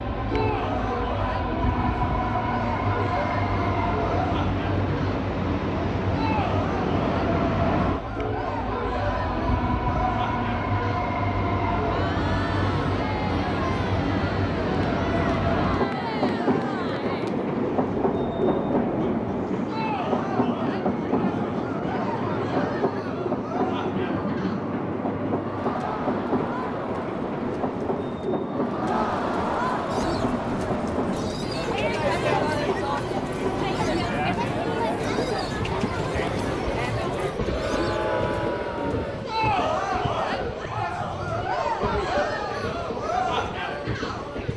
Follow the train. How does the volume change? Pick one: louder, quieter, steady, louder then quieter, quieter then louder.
quieter.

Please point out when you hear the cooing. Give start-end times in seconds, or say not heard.
29.9-39.2.